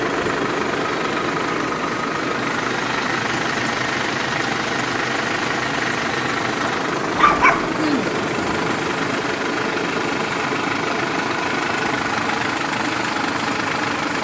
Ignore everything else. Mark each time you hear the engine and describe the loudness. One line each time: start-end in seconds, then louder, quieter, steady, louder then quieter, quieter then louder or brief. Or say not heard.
0.0-14.1 steady.